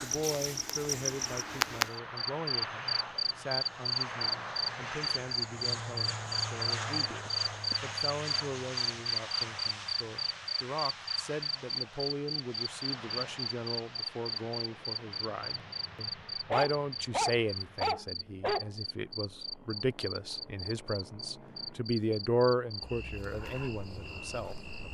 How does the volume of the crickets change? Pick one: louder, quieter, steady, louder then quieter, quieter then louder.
quieter.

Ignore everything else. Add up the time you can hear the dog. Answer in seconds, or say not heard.
2 s.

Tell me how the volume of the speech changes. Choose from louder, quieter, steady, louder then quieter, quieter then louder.
louder.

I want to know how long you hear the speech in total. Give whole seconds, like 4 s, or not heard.
25 s.